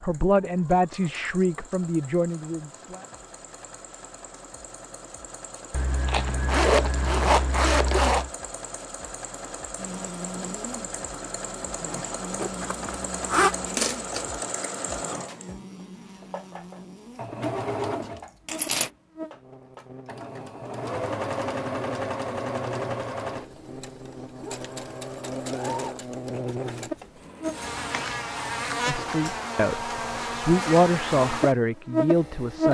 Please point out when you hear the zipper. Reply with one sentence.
You can hear the zipper from 5.7 to 8.3 s, from 12.3 to 13.6 s and from 27.4 to 28.1 s.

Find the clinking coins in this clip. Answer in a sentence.
You can hear the clinking coins from 13.6 to 14.3 s and from 18.4 to 18.9 s.